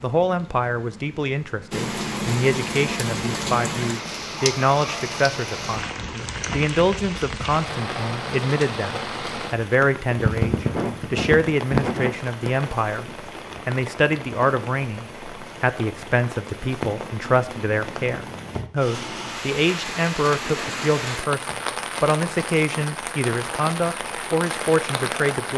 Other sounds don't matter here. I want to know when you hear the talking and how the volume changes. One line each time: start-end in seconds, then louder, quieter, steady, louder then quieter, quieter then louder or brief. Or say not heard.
0.0-25.5 steady.